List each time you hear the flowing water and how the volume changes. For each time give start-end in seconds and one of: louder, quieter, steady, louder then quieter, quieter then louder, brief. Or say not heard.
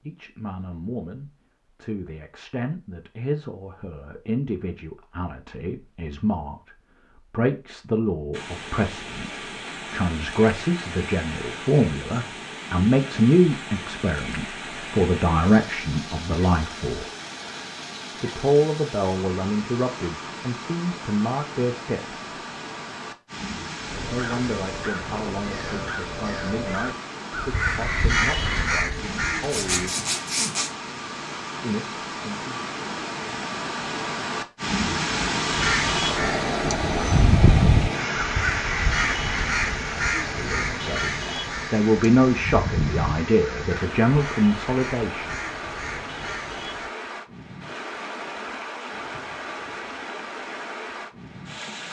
8.3-51.8 louder then quieter.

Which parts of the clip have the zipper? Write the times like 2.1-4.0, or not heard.
29.4-30.7.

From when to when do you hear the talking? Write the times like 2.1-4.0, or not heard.
0.0-17.1, 18.2-22.2, 24.1-30.0, 31.6-32.6, 40.4-45.4.